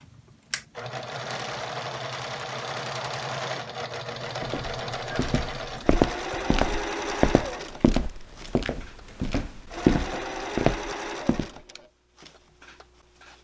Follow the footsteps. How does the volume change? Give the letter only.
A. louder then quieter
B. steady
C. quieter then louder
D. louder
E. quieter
C.